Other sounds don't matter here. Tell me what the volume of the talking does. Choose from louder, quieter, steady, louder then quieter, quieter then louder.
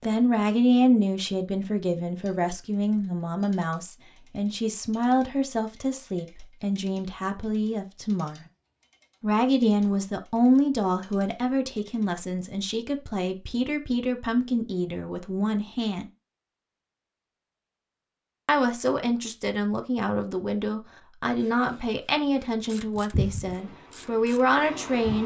steady.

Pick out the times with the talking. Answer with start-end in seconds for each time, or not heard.
0.0-8.4, 9.2-16.1, 18.4-25.2.